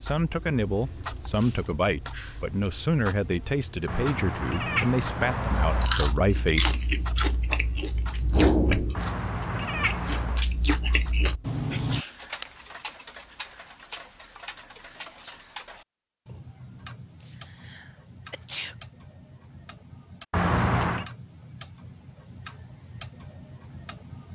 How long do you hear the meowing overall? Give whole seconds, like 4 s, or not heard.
4 s.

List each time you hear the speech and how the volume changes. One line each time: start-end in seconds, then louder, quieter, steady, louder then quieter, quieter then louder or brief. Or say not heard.
0.0-6.8 steady.